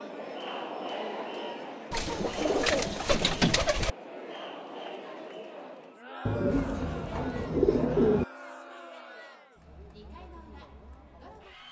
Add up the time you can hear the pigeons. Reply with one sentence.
You can hear the pigeons for 4 seconds altogether.